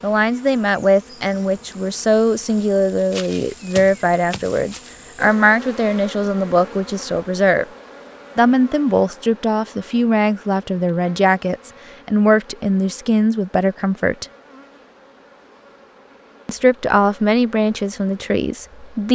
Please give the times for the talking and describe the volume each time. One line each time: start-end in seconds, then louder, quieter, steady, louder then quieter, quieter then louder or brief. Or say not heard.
0.0-7.7 steady
8.3-14.2 steady
16.4-19.0 brief.